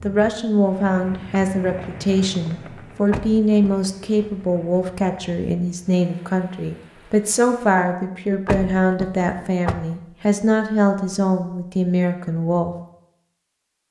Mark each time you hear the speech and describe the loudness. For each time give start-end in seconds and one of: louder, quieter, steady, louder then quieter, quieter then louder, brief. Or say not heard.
0.0-12.8 steady.